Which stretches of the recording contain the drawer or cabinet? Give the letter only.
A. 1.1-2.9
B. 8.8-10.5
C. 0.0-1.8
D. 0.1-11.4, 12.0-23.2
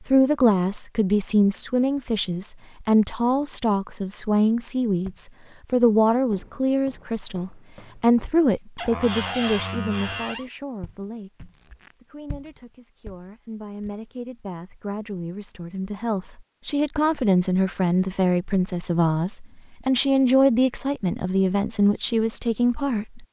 B.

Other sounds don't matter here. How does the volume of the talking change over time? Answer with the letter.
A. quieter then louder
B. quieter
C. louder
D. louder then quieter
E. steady
A.